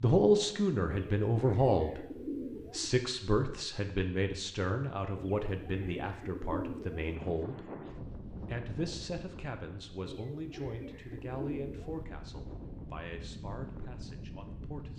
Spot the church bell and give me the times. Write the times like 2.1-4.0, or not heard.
not heard.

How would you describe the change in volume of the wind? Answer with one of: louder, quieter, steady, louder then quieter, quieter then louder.
quieter then louder.